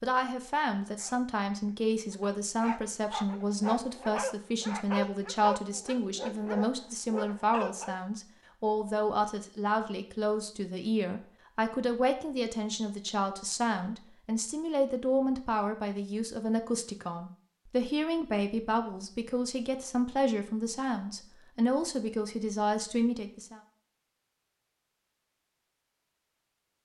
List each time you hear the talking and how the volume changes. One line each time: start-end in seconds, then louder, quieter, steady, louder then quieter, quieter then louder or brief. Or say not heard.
0.0-23.6 steady.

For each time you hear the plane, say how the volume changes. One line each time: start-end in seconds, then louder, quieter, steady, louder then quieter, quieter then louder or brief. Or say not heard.
not heard.